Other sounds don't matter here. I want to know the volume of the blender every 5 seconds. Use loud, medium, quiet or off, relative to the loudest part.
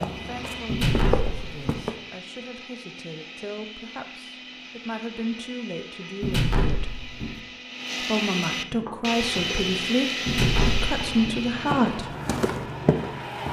medium, loud, loud.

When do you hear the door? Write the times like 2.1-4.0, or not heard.
0.7-1.9, 6.2-7.4, 10.2-11.4.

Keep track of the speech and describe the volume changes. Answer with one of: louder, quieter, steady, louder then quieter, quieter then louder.
louder.